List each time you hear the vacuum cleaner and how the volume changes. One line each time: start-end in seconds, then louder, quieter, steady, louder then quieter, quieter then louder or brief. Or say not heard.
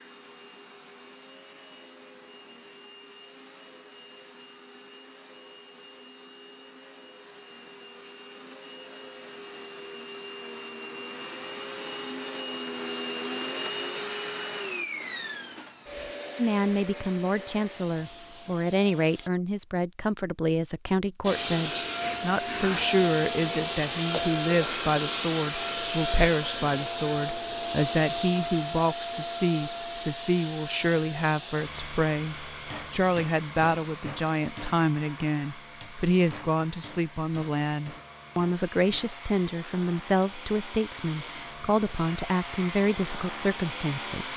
0.0-19.3 louder then quieter
21.2-44.3 quieter then louder.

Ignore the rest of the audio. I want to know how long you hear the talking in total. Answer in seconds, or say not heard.
28 s.